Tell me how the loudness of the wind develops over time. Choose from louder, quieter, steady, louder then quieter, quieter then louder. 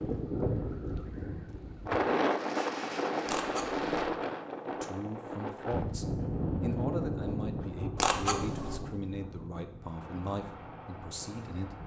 quieter.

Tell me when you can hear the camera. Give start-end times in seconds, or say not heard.
3.2-3.9, 8.0-8.8.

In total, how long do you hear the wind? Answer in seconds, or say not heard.
12 s.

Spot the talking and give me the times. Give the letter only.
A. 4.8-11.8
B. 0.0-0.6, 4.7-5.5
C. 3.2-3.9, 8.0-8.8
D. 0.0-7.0
A.